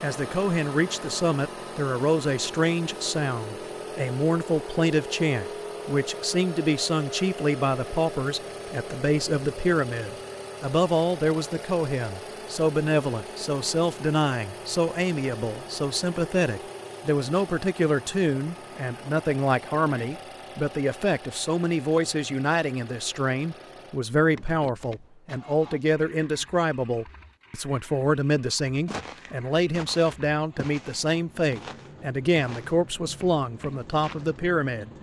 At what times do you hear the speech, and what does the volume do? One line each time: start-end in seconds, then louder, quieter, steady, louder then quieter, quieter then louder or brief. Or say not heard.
0.0-34.9 steady.